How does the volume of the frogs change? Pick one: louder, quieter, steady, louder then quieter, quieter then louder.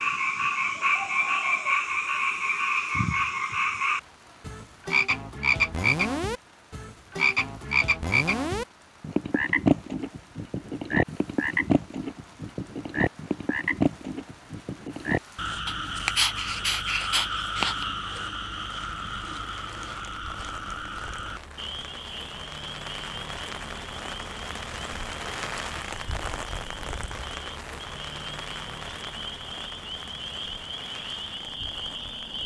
quieter.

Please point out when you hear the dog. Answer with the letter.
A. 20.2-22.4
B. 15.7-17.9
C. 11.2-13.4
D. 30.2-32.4
B.